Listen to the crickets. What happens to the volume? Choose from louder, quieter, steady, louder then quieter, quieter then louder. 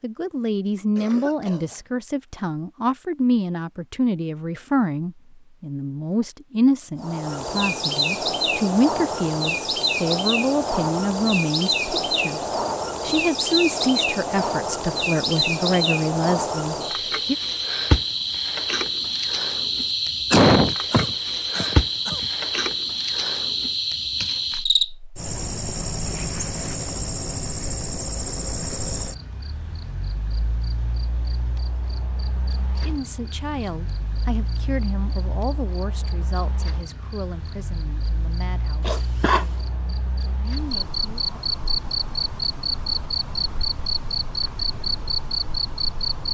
quieter then louder.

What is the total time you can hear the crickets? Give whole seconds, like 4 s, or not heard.
39 s.